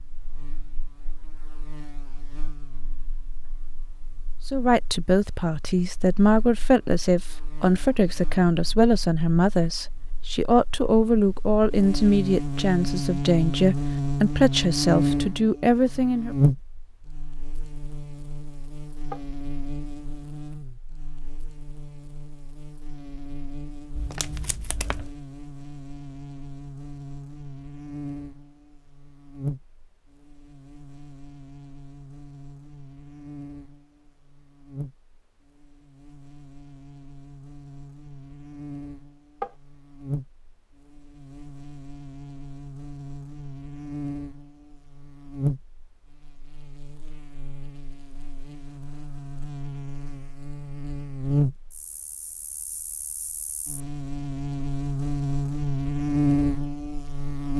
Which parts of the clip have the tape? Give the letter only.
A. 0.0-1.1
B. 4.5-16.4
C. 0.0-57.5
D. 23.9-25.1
D.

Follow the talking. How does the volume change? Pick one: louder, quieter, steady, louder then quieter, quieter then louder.
steady.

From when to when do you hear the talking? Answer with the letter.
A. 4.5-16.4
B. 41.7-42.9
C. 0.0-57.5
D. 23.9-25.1
A.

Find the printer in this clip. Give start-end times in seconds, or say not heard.
not heard.